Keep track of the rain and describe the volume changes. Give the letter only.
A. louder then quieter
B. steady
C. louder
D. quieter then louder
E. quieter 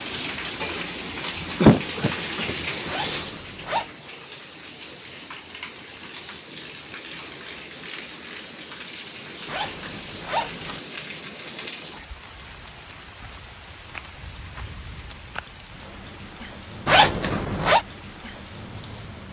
E.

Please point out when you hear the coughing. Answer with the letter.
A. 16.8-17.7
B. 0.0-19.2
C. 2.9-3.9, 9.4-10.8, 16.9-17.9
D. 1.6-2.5
D.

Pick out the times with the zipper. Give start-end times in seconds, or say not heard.
2.9-3.9, 9.4-10.8, 16.9-17.9.